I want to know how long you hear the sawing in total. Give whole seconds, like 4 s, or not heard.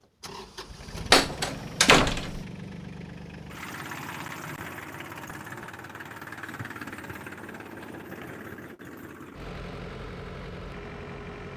not heard.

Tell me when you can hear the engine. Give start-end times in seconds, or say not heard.
0.0-11.5.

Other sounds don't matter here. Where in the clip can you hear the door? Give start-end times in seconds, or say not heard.
1.1-2.4.